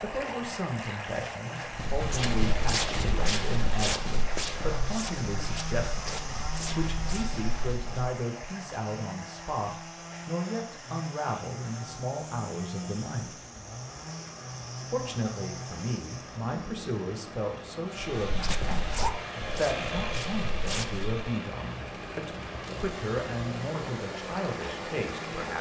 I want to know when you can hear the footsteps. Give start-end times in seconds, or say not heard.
1.7-8.2, 18.1-21.2.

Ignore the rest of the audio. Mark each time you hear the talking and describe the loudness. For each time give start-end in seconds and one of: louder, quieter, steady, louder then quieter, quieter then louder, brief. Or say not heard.
0.0-13.4 steady
14.9-25.5 steady.